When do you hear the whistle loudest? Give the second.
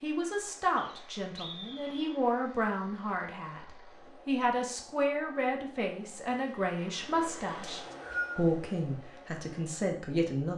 8 s.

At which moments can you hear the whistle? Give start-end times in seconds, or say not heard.
0.8-2.1, 7.6-8.4.